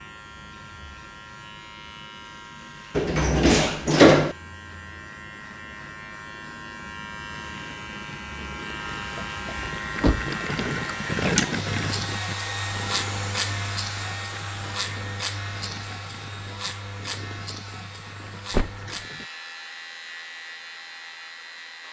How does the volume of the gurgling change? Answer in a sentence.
The volume of the gurgling goes up, then down.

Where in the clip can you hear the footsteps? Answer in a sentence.
The footsteps can't be heard in this clip.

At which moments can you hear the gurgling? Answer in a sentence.
The gurgling can be heard from 7.2 to 19.3 s.